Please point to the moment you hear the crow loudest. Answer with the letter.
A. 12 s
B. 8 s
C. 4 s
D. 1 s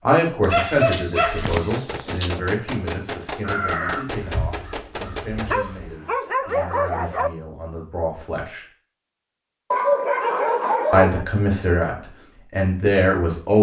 C.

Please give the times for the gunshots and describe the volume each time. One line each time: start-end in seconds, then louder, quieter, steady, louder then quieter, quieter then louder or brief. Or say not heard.
1.6-5.5 steady.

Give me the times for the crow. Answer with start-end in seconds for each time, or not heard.
3.4-6.0.